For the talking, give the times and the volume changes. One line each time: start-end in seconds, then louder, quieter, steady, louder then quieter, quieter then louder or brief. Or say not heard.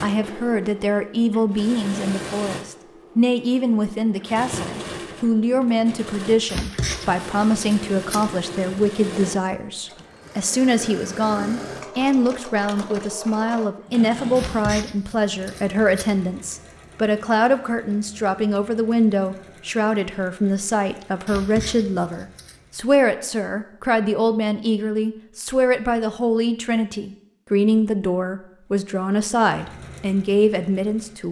0.0-31.2 steady.